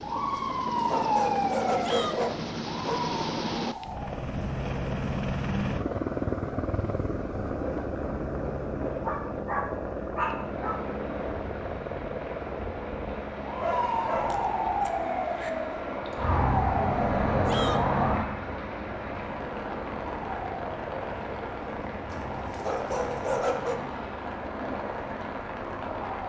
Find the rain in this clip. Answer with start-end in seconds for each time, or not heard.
10.3-26.2.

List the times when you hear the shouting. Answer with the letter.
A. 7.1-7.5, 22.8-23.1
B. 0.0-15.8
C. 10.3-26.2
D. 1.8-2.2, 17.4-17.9
D.